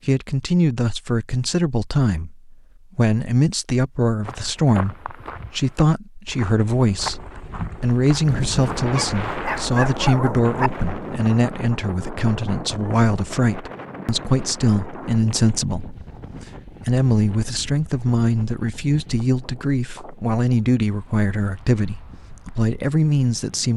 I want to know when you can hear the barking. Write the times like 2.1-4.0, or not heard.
8.9-10.7.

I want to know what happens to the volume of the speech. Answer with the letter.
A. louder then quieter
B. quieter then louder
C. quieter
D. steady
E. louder
D.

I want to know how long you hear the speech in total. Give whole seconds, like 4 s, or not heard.
24 s.